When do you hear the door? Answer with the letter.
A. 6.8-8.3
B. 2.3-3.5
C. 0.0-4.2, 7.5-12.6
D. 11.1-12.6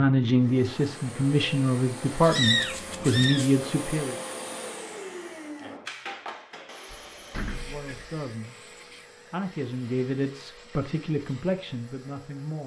A.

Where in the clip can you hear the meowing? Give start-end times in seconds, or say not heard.
2.3-3.5.